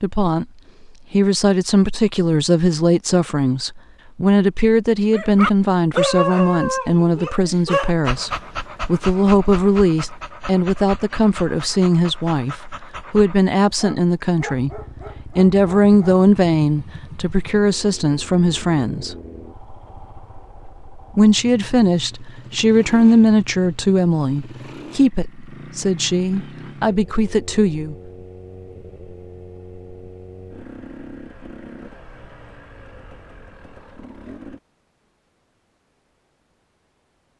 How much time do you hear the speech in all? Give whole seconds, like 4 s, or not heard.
25 s.